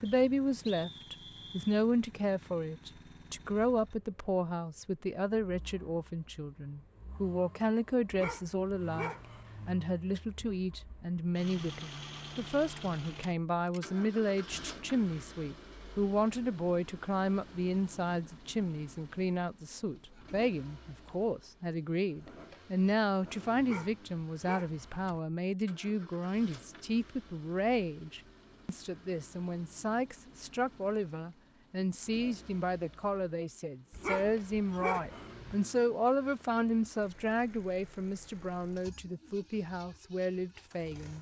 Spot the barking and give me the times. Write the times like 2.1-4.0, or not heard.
8.1-9.7, 23.6-25.2, 33.9-35.5.